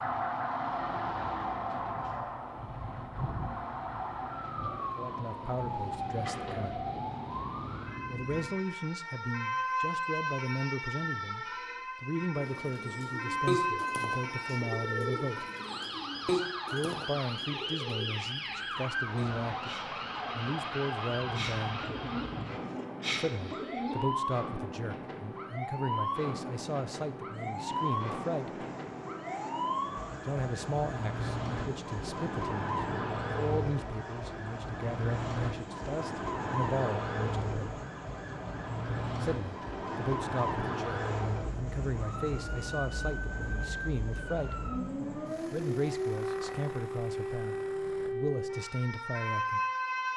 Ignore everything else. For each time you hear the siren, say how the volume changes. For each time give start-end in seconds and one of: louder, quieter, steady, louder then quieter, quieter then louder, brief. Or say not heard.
0.0-50.1 steady.